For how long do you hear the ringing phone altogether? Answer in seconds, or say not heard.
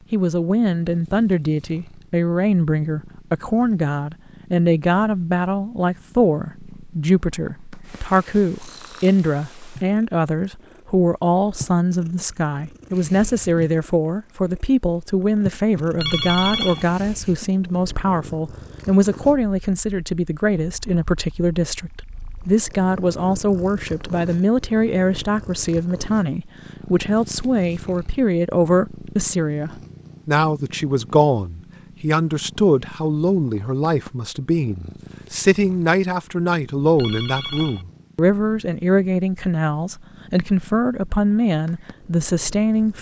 2 s.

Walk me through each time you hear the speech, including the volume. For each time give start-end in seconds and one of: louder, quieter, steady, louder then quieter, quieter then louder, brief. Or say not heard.
0.1-42.9 steady.